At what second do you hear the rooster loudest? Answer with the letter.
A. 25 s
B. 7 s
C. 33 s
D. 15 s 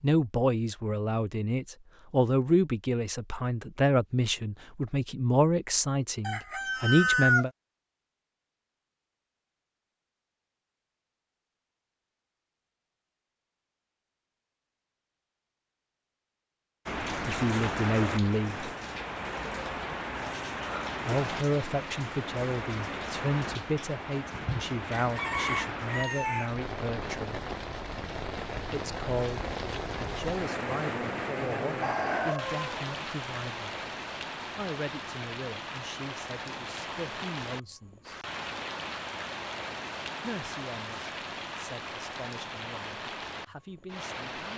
B.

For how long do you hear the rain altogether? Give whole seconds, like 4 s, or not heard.
28 s.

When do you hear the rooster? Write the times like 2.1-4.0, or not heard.
6.2-7.5, 24.4-26.5, 31.8-32.9.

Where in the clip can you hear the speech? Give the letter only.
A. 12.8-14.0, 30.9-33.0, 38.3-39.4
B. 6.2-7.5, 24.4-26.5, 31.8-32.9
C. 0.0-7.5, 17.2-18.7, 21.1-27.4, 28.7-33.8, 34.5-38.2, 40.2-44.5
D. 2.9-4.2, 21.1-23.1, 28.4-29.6
C.